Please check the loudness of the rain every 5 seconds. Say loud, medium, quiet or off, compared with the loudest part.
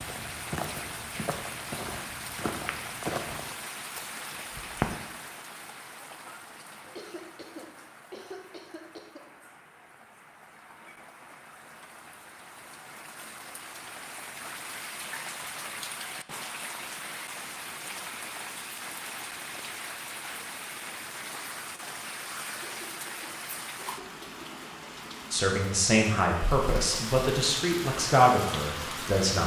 loud, medium, medium, loud, loud, loud.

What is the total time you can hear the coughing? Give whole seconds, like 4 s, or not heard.
5 s.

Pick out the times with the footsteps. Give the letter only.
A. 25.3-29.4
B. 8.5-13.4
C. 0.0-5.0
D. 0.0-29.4
C.